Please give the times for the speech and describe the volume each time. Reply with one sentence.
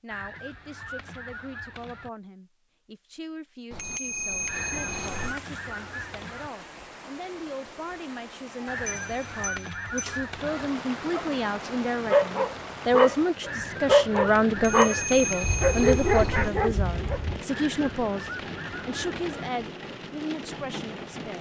The speech can be heard from 0.0 to 21.3 s, getting louder then quieter.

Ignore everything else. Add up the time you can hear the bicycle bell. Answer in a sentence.
The bicycle bell can be heard for 5 seconds in total.